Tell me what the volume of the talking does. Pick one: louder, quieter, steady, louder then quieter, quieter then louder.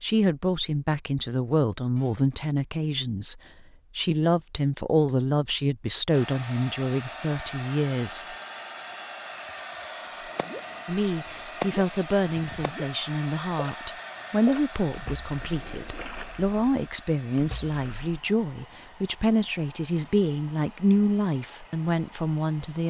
steady.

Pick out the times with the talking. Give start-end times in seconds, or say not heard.
0.0-8.2, 10.8-22.8.